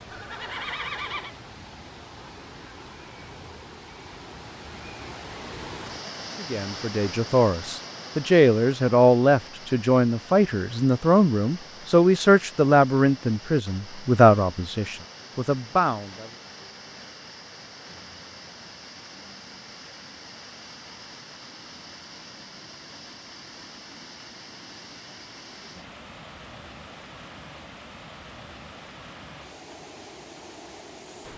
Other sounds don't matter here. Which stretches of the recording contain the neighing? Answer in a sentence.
You can hear the neighing from 0.1 to 1.4 s.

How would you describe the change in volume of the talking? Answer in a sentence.
The volume of the talking stays about the same.